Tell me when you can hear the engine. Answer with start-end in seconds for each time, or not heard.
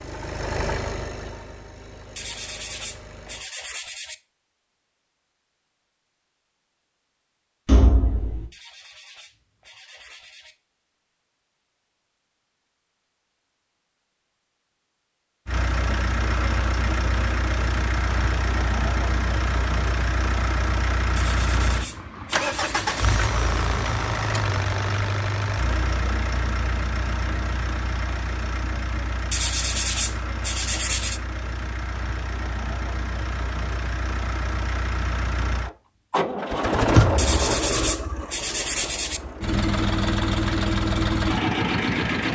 0.0-3.5, 15.4-42.2.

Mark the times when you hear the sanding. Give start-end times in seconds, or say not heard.
2.1-4.2, 8.5-10.6, 21.1-22.9, 29.3-31.2, 37.1-39.2.